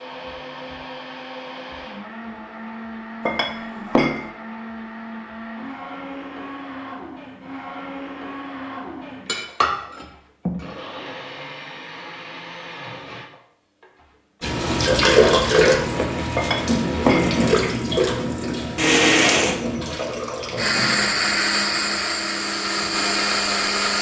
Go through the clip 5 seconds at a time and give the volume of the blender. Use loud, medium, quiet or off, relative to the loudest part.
quiet, quiet, quiet, loud, loud.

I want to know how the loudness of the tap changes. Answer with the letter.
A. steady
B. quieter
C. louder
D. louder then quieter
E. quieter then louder
B.